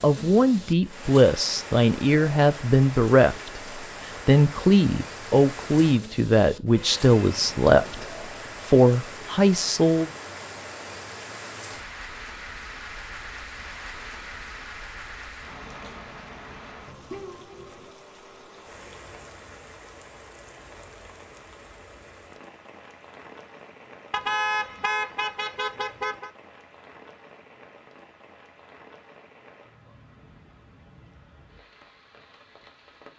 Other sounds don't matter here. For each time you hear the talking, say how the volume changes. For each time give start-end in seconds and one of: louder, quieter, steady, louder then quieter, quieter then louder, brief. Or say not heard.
0.0-10.1 steady.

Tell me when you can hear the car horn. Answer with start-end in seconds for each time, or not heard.
6.8-8.1, 24.1-26.3.